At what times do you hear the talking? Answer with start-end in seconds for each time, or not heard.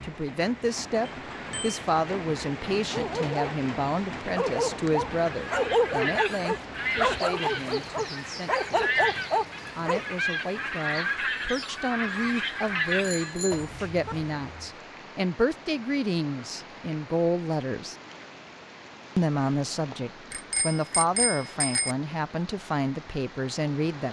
0.0-8.9, 9.8-17.9, 19.1-24.0.